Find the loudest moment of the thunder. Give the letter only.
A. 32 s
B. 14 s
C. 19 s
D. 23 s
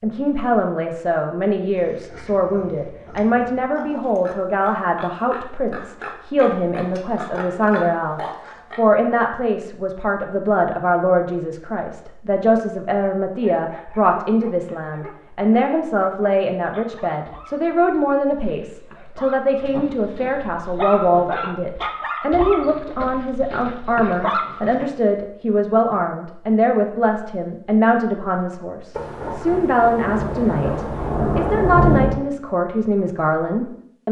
A.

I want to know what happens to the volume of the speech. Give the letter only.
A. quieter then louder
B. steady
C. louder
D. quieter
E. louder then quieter
B.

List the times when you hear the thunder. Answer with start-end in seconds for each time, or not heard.
28.9-32.2.